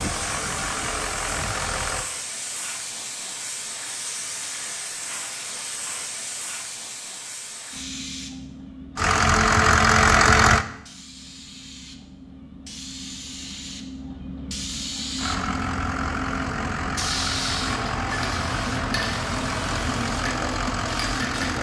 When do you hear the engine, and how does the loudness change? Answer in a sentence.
You can hear the engine briefly from 0.0 to 2.1 s; briefly from 8.9 to 10.7 s; and from 15.2 to 21.5 s, at a steady volume.